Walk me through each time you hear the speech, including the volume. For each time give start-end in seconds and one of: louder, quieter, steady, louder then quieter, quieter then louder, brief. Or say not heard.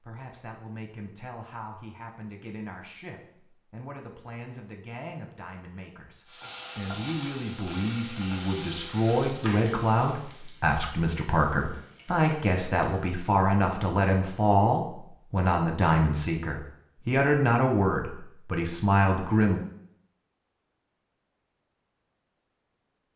0.0-19.6 louder.